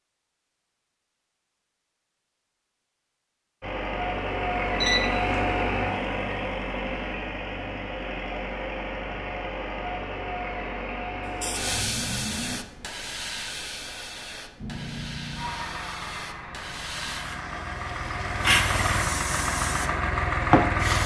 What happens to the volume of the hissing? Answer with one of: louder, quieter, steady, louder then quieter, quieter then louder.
quieter then louder.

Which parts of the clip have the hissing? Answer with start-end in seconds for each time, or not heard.
11.2-21.0.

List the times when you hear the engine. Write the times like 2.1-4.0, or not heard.
3.6-12.6, 14.6-21.0.